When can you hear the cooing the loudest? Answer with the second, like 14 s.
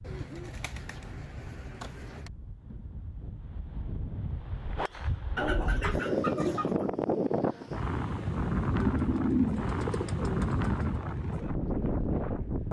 9 s.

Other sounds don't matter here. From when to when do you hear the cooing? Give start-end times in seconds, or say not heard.
0.1-2.3, 5.3-6.8, 8.8-11.0.